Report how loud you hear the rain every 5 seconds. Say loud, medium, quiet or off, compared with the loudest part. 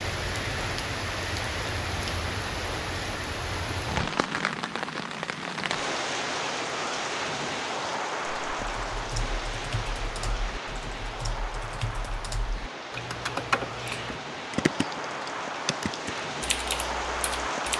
loud, loud, medium, loud.